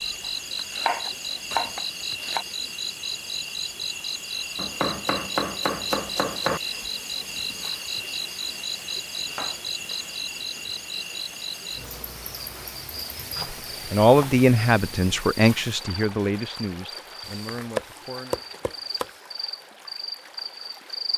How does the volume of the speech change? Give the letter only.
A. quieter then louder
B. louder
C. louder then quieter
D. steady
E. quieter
E.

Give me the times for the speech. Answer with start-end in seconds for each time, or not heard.
13.9-18.4.